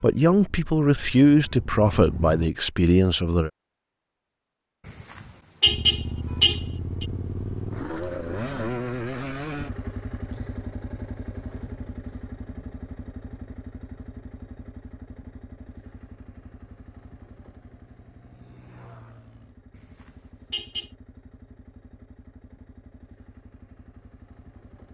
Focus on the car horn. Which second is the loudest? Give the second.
6 s.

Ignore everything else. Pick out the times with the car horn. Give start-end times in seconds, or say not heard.
4.8-7.0, 19.8-20.9.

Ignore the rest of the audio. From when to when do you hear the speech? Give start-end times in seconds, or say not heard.
0.0-3.5.